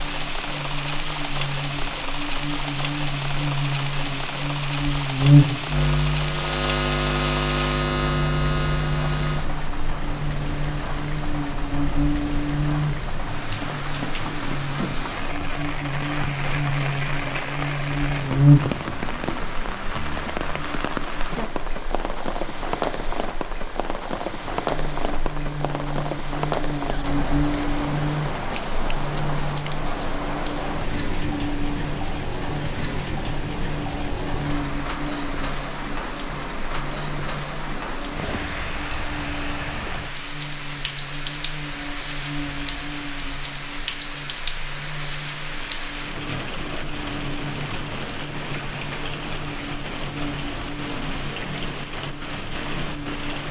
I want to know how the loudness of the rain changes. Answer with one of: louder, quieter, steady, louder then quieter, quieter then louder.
steady.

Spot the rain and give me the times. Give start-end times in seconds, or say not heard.
0.0-53.4.